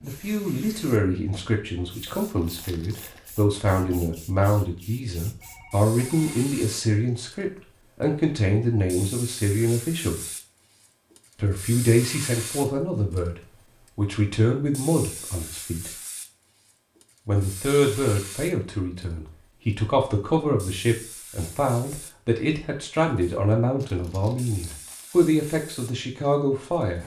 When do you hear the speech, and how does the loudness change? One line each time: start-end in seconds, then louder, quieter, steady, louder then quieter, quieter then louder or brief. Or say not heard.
0.0-10.2 steady
11.3-15.9 quieter then louder
17.2-27.0 steady.